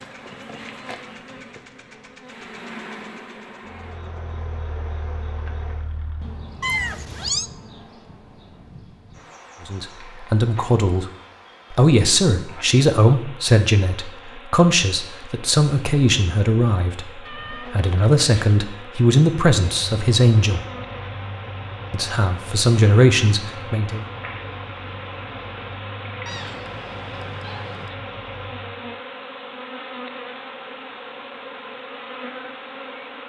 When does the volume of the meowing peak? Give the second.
7 s.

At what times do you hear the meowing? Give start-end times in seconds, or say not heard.
6.6-7.5, 17.2-18.6, 26.2-27.9.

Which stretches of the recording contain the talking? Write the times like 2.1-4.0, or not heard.
9.7-11.1, 11.7-20.6, 21.9-24.1.